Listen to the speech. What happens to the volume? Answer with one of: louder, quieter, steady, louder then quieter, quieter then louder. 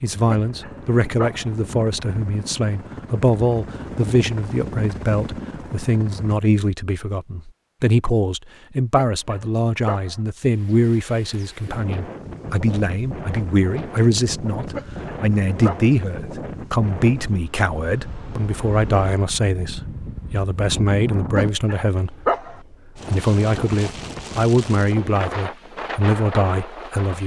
steady.